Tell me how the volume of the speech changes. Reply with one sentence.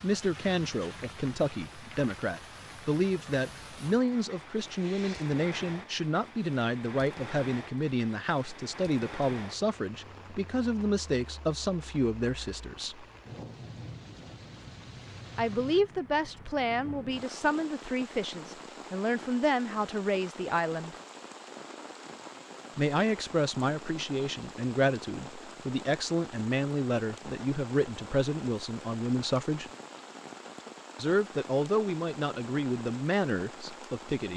The volume of the speech stays about the same.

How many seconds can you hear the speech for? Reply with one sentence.
The speech can be heard for 29 seconds in total.